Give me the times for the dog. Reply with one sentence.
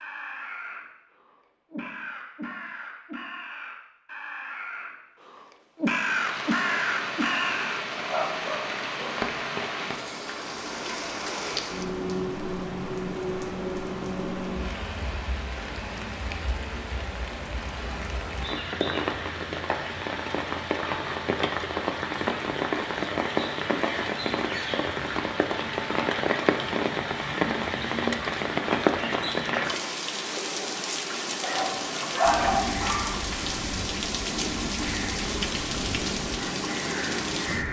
The dog can be heard from 8.1 to 9.2 s and from 31.4 to 33.2 s.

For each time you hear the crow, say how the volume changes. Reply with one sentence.
You can hear the crow from 0.0 to 7.8 s, getting louder; and from 31.4 to 37.6 s, at a steady volume.